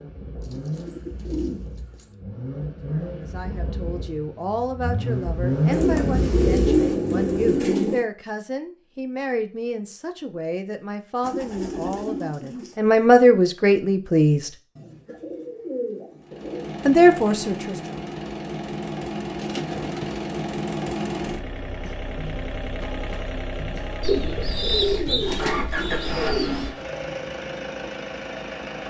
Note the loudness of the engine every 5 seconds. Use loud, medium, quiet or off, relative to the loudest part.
medium, loud, off, medium, medium, medium.